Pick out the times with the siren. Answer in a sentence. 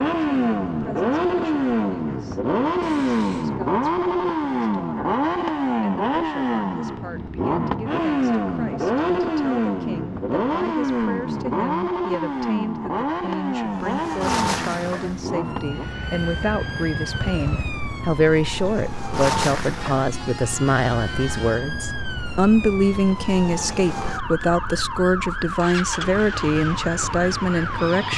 The siren can be heard from 13.6 to 28.1 s.